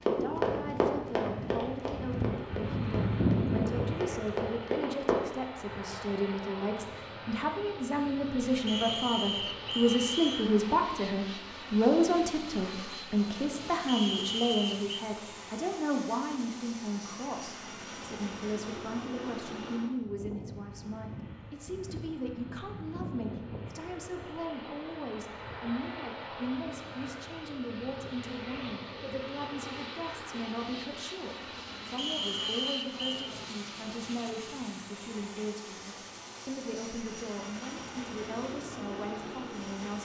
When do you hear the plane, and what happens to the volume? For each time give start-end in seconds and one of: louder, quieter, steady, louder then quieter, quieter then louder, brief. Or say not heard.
0.1-39.9 quieter.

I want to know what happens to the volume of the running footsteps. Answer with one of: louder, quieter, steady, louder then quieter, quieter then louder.
quieter then louder.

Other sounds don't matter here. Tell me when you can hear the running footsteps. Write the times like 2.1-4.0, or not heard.
0.0-5.2.